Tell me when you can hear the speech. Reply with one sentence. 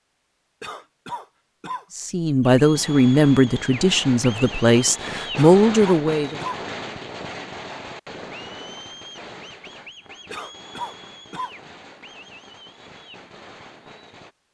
The speech can be heard from 1.9 to 6.4 s.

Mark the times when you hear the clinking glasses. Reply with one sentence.
The clinking glasses can't be heard in this clip.